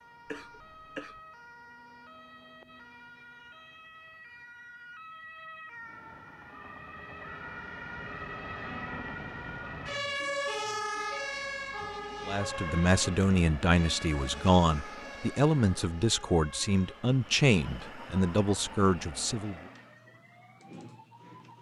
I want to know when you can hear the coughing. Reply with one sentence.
You can hear the coughing from 0.2 to 1.2 s.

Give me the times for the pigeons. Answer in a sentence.
The pigeons can't be heard in this clip.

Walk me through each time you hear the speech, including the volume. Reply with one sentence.
The speech can be heard from 12.2 to 19.6 s, at a steady volume.